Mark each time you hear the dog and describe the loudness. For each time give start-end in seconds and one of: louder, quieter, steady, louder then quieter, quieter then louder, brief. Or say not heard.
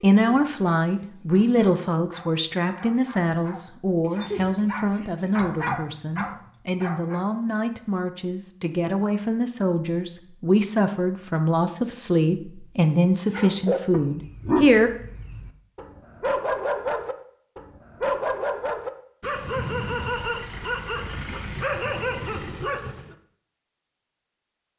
0.1-7.3 louder
13.3-23.1 steady.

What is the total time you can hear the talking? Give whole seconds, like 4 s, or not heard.
15 s.